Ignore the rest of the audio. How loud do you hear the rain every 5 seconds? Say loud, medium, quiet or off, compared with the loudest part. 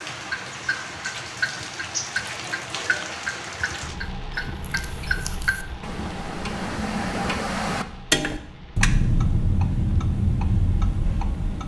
loud, medium, quiet.